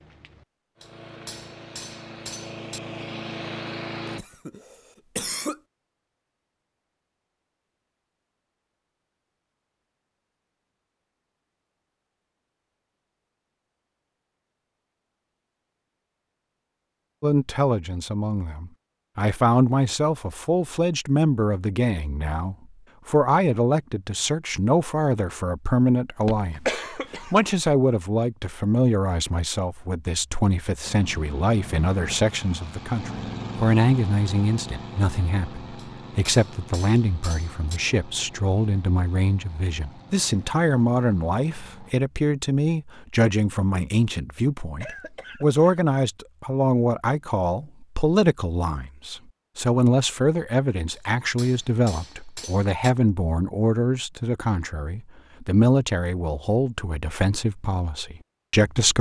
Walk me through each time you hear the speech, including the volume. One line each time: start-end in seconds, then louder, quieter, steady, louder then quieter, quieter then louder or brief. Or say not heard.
17.2-58.9 steady.